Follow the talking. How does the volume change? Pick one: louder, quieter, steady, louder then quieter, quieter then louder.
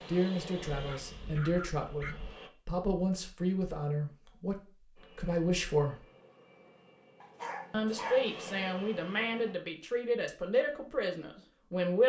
steady.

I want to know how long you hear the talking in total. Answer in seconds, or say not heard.
10 s.